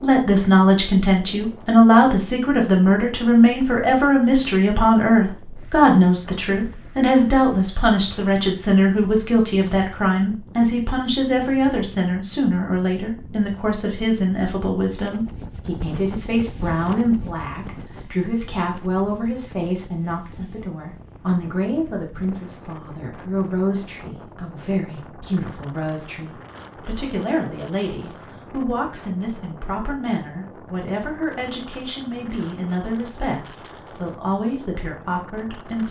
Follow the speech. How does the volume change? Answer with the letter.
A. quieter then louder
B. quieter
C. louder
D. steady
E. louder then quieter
B.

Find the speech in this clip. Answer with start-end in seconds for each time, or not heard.
0.0-35.8.